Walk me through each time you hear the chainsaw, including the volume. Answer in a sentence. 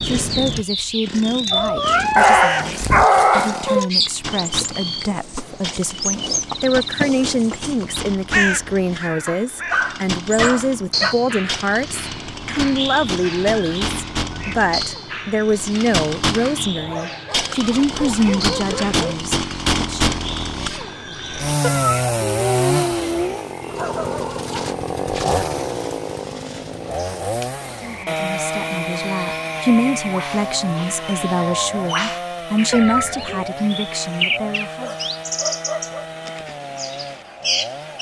You can hear the chainsaw from 0.0 to 37.9 s, getting louder then quieter.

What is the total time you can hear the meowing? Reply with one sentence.
The meowing can be heard for 4 seconds in total.